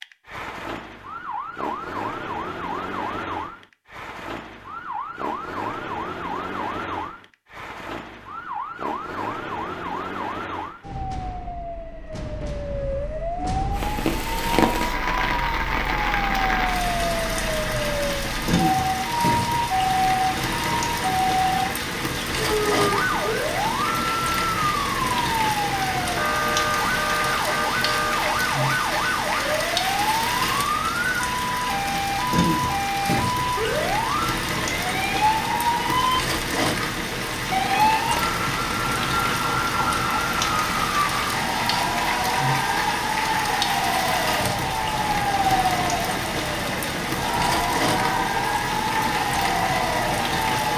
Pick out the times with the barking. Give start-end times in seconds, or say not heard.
not heard.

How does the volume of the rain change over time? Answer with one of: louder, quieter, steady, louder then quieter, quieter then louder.
steady.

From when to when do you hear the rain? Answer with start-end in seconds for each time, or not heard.
13.7-50.7.